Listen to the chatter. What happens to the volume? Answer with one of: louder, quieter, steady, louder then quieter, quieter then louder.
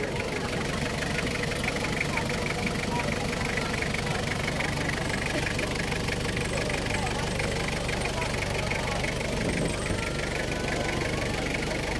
steady.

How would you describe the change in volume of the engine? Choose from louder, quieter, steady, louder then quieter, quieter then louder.
steady.